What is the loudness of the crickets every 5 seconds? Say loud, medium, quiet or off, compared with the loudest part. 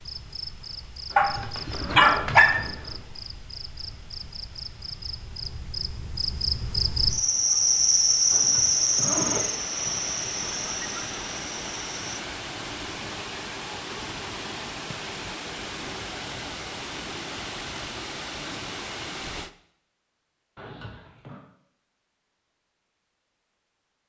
quiet, loud, medium, off, off.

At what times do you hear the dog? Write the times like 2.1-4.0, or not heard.
1.1-2.7.